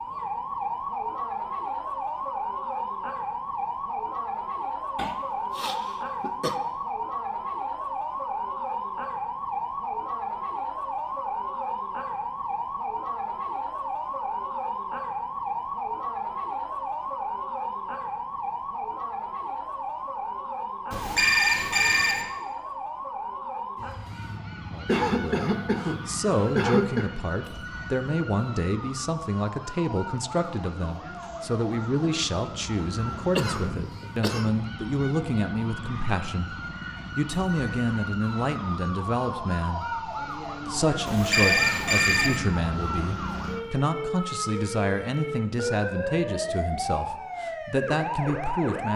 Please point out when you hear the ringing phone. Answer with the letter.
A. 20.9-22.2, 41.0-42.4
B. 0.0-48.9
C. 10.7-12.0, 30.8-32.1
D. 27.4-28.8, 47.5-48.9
A.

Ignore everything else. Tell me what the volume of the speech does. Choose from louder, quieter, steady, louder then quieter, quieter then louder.
steady.